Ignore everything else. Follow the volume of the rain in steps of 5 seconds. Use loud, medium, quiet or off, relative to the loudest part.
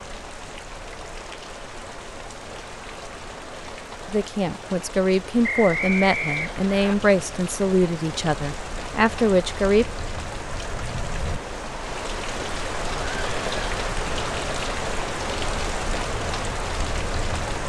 medium, medium, loud, loud.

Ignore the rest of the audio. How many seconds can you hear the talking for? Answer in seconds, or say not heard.
6 s.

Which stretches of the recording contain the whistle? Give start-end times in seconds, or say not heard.
5.4-7.0.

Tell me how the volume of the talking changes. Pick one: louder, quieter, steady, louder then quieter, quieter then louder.
steady.